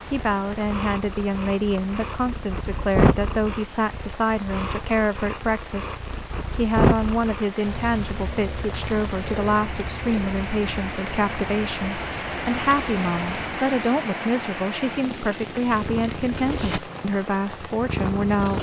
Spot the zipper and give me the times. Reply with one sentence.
You can't hear the zipper here.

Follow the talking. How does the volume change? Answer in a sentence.
The volume of the talking stays about the same.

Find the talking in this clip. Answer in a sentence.
You can hear the talking from 0.1 to 18.5 s.